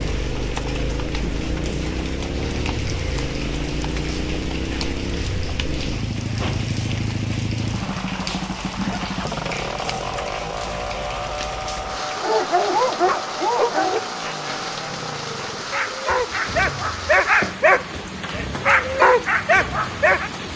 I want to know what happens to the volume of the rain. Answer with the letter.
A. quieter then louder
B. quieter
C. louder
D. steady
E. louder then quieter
D.